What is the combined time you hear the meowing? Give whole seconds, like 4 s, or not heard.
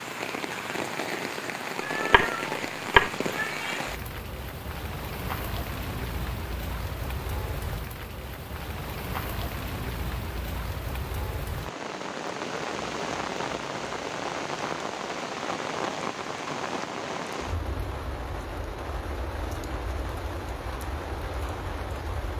2 s.